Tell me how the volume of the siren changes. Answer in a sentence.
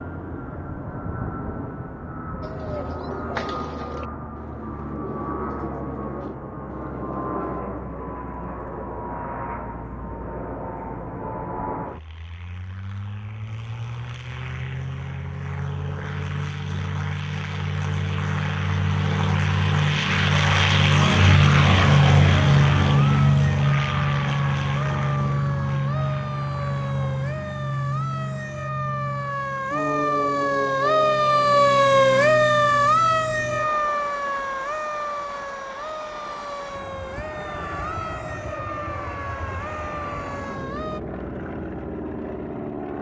The loudness of the siren goes up, then down.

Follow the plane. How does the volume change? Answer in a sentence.
The volume of the plane goes up, then down.